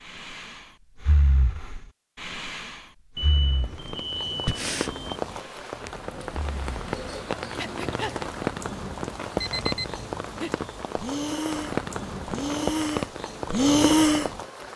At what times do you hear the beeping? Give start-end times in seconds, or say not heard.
3.1-5.2, 9.3-10.2.